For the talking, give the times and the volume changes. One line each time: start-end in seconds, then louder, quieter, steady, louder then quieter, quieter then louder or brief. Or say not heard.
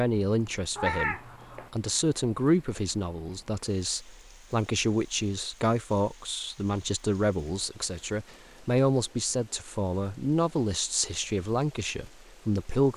0.0-12.9 steady.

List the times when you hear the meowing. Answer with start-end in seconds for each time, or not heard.
0.8-1.7.